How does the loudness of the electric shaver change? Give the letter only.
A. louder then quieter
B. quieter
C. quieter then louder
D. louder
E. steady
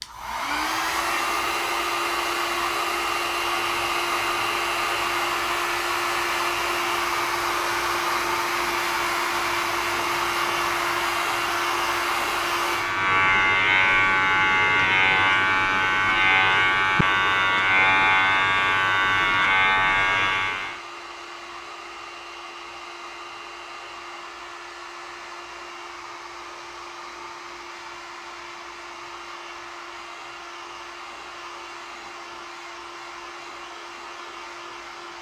D.